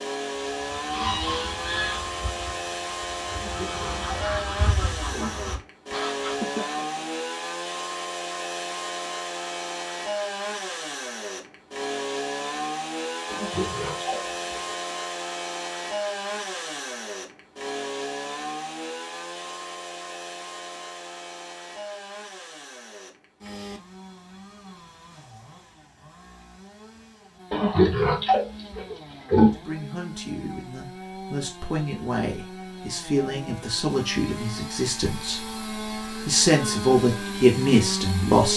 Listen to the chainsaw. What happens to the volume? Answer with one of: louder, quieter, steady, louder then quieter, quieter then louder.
quieter then louder.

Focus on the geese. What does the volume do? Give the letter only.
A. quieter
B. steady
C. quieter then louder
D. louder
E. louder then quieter
C.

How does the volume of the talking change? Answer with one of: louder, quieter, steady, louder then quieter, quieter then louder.
louder.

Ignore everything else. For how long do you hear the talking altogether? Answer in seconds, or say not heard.
9 s.